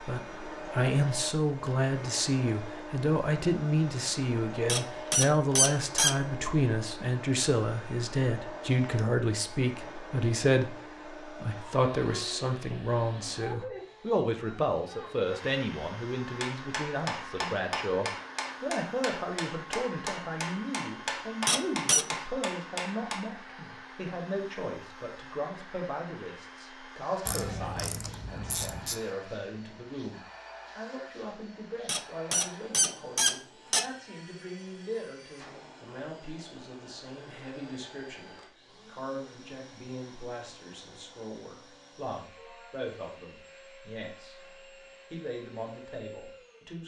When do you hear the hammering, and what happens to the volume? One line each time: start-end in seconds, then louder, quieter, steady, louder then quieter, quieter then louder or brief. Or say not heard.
16.2-23.3 steady.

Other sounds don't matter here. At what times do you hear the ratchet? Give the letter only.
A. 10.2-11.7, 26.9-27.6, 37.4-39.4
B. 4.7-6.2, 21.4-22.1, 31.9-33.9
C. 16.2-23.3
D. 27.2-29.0
D.